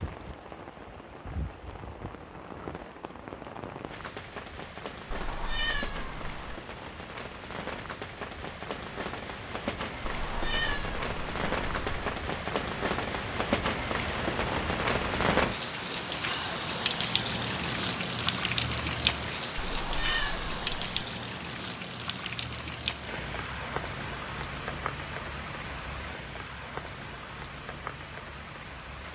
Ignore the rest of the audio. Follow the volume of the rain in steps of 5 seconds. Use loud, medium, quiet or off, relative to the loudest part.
quiet, medium, loud, loud, medium, medium.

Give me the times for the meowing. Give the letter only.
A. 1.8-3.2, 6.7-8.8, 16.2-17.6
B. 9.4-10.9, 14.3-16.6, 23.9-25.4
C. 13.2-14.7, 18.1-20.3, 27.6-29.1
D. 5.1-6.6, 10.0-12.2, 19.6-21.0
D.